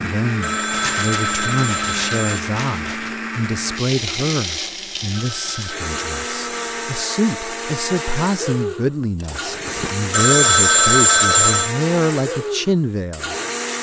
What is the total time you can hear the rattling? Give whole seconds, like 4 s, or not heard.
3 s.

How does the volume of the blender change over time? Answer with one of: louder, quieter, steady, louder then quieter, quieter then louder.
steady.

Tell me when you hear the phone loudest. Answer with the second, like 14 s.
11 s.